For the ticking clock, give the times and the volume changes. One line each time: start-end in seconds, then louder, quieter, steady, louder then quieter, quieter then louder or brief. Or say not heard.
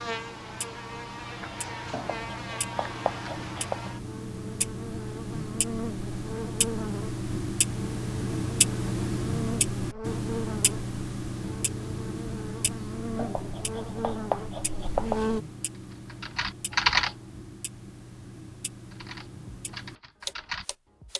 0.0-21.1 louder then quieter.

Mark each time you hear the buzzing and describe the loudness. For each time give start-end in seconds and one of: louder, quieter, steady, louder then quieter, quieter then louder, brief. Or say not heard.
0.0-15.4 steady.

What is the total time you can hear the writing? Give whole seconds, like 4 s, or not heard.
4 s.